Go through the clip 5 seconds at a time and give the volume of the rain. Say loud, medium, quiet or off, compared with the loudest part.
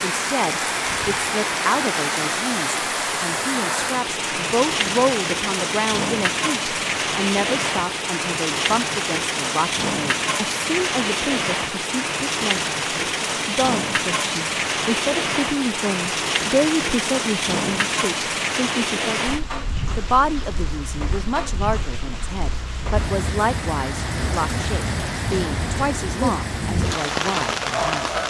loud, loud, loud, loud, medium, loud.